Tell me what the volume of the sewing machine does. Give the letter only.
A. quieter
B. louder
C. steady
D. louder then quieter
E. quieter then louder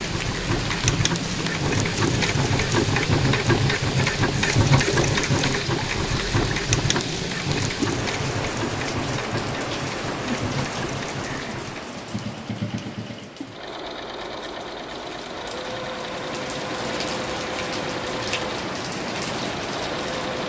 A.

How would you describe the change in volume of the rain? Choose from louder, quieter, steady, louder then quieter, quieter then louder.
quieter then louder.